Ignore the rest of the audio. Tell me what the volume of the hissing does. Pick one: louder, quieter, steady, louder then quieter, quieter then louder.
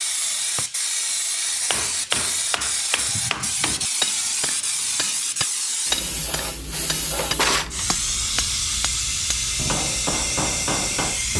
steady.